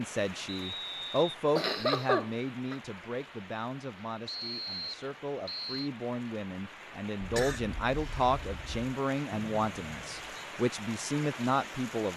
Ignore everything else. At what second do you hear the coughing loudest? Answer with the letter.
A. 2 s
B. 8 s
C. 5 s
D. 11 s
A.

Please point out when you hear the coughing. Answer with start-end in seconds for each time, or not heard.
1.6-2.8, 7.2-8.9.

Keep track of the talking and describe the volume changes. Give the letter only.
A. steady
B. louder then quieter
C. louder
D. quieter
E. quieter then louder
E.